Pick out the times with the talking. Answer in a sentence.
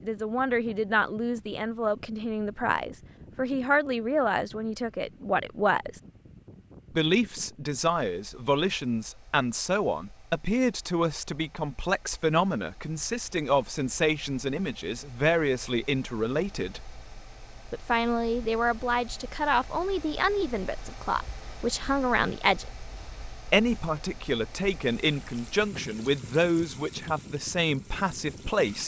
You can hear the talking from 0.0 to 6.0 s, from 7.0 to 16.9 s, from 17.7 to 22.6 s and from 23.5 to 28.8 s.